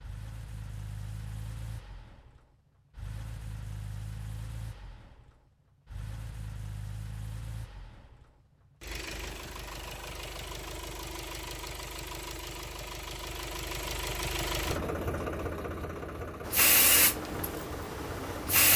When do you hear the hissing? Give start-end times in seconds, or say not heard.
16.4-18.7.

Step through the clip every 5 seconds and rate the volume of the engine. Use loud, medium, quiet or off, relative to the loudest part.
medium, medium, loud, loud.